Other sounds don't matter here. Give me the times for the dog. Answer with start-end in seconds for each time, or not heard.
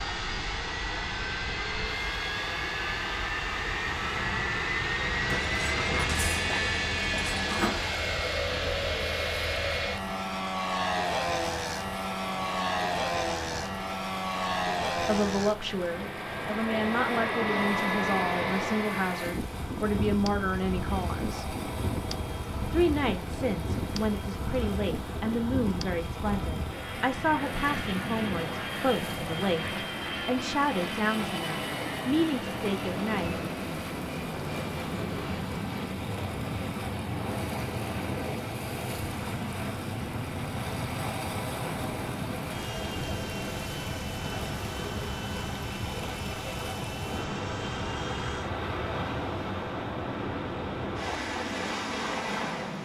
5.2-7.8.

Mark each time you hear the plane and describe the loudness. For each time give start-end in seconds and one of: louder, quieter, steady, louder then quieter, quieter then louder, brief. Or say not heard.
0.0-52.8 quieter.